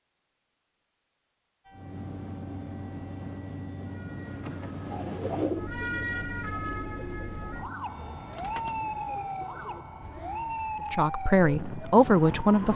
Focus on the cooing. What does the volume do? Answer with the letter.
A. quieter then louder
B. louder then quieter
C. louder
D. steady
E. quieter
E.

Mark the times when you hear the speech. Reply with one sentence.
The speech can be heard from 10.9 to 12.7 s.